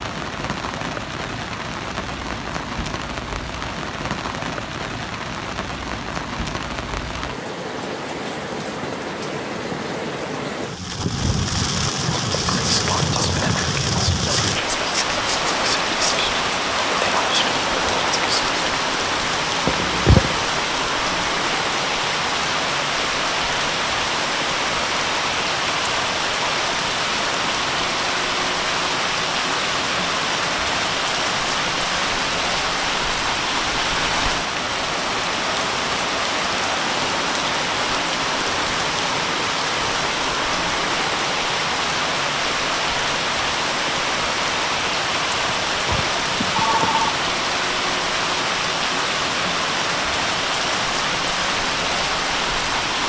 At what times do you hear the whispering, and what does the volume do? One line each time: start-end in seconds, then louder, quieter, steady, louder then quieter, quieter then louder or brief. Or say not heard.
12.1-18.8 steady.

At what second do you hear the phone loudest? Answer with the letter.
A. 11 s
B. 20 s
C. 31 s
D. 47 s
B.